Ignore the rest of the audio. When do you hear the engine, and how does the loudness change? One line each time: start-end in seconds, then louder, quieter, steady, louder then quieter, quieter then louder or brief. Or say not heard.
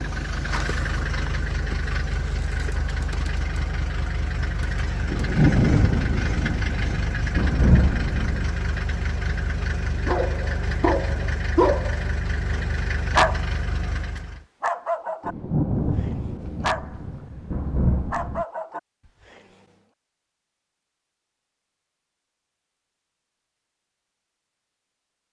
0.0-14.4 steady.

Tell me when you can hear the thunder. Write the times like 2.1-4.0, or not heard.
5.1-8.4, 15.2-18.4.